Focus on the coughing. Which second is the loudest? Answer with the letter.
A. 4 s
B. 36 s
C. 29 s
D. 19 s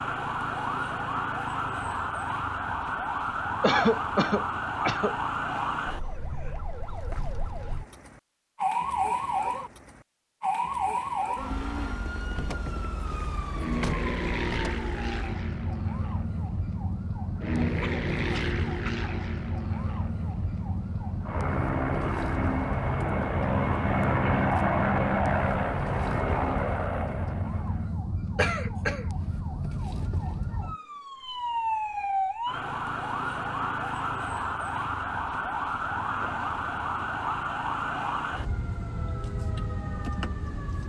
A.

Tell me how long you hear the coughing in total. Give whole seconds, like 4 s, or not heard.
4 s.